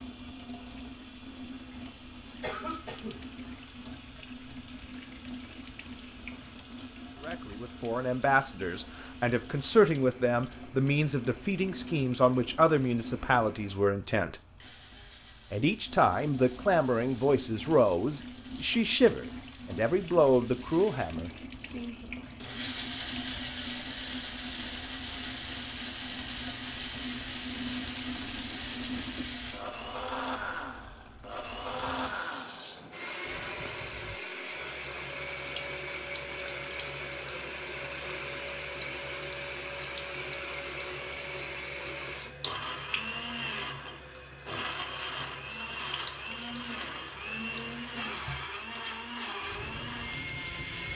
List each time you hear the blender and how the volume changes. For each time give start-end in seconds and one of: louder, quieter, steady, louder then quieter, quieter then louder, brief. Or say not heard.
0.0-50.9 louder.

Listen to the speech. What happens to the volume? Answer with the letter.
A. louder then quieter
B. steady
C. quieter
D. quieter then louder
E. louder
B.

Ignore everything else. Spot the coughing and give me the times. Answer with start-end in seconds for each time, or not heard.
2.4-3.2.